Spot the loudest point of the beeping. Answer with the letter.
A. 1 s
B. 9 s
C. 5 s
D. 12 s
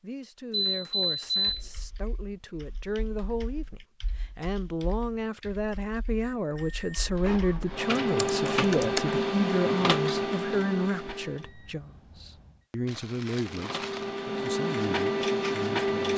A.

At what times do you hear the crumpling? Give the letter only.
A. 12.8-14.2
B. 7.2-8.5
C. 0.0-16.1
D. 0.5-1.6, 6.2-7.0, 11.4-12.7
A.